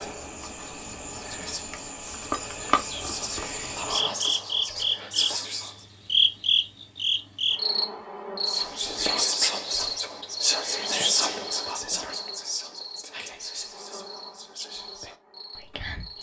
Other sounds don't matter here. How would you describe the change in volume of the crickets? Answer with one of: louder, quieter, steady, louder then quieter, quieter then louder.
louder then quieter.